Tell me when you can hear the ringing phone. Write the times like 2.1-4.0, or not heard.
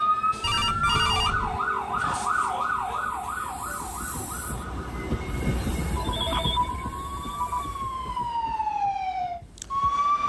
0.4-1.6, 6.0-7.7.